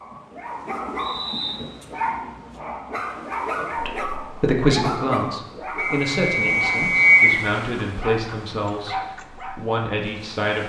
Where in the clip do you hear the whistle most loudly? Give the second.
7 s.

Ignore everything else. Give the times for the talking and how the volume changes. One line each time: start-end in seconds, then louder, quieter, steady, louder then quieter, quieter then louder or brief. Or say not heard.
3.8-10.6 quieter.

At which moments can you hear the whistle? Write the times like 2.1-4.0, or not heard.
0.9-1.6, 5.8-7.4.